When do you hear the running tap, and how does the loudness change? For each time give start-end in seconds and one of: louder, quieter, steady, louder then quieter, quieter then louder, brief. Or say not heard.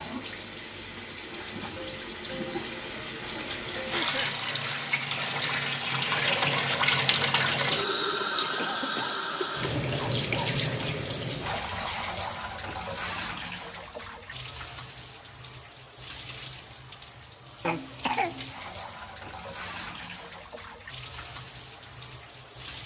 0.0-22.8 louder then quieter.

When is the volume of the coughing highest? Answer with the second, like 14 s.
18 s.